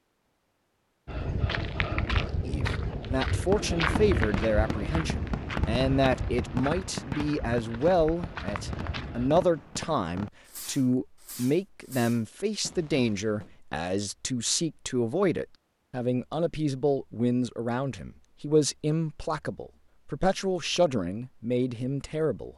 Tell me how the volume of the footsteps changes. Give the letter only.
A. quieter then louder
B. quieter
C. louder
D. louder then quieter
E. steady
B.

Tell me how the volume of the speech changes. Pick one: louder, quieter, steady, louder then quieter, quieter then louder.
steady.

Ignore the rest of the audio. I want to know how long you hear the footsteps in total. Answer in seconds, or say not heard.
8 s.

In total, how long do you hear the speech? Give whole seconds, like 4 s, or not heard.
20 s.